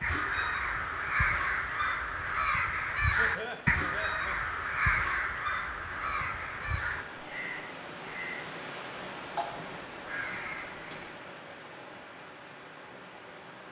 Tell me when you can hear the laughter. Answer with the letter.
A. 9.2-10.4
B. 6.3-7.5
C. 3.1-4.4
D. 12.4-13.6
C.